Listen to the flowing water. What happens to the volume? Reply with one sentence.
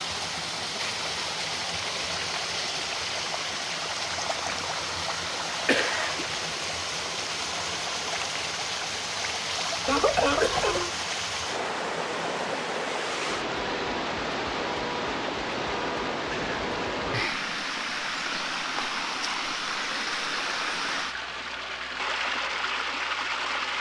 The loudness of the flowing water stays about the same.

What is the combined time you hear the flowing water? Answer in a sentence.
The flowing water can be heard for 24 seconds in total.